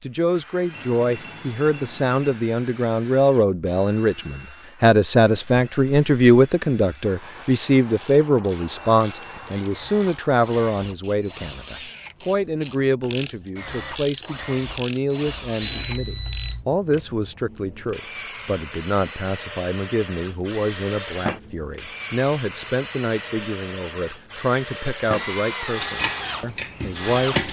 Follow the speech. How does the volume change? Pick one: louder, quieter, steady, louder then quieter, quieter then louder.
quieter.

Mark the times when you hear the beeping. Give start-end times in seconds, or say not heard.
0.7-2.4, 15.6-16.6.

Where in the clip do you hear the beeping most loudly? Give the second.
16 s.